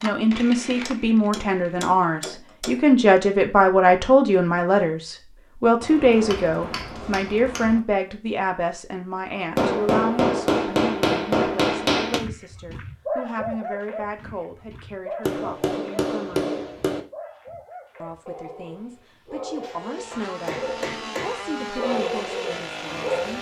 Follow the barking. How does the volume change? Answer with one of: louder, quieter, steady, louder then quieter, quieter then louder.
quieter then louder.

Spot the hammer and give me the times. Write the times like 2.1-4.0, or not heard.
0.8-2.9, 5.8-7.8, 9.6-12.2, 15.2-17.0, 19.6-21.4.